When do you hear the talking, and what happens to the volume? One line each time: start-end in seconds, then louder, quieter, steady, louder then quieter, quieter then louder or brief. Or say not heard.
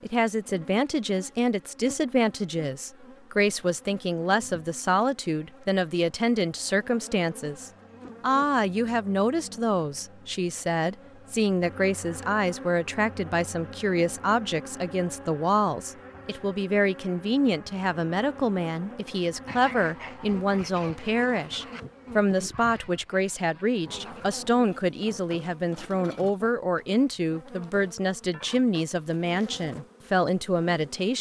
0.0-31.1 steady.